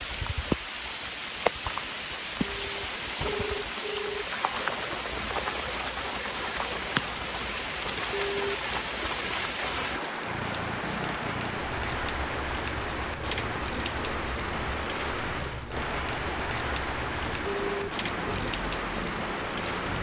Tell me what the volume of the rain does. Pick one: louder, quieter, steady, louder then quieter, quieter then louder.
steady.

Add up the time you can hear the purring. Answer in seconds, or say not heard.
10 s.